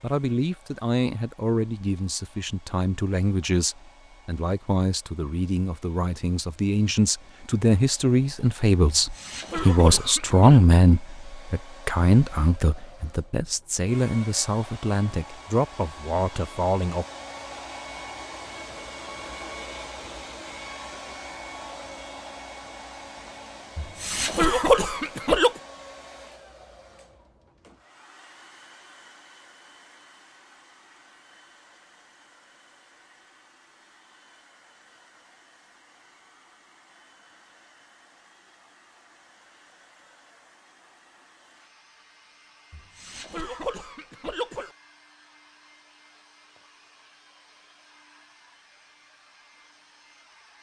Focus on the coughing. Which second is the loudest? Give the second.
25 s.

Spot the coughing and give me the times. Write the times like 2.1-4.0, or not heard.
8.9-10.6, 23.8-25.5, 42.7-44.7.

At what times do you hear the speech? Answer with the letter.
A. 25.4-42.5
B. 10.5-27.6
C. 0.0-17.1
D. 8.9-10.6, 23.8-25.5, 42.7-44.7
C.